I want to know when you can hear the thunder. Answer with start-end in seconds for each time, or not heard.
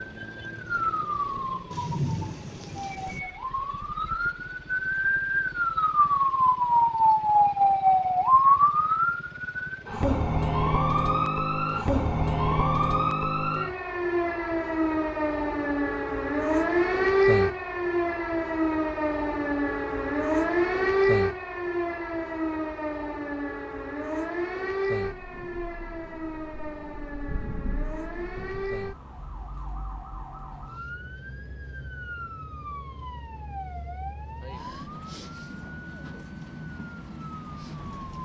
1.7-3.2, 25.0-28.9.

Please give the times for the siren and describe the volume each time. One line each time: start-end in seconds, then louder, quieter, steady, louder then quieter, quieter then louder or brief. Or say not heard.
0.0-38.2 quieter.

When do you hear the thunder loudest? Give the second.
2 s.